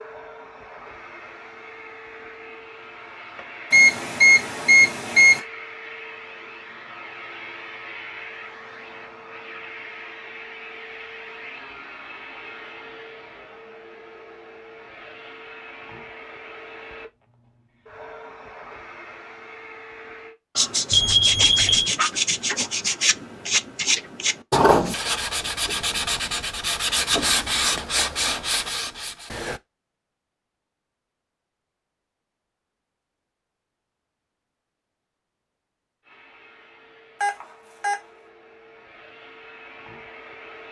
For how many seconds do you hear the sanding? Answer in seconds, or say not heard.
9 s.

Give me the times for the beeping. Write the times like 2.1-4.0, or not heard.
3.7-5.4, 20.9-21.9, 37.2-38.0.